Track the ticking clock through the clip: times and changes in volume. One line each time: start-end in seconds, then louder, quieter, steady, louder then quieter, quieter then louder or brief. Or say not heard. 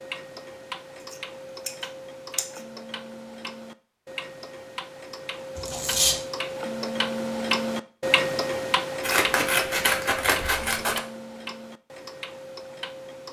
0.0-13.2 louder then quieter.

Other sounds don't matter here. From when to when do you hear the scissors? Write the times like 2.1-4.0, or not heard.
1.1-2.6, 5.5-6.2, 9.0-11.0.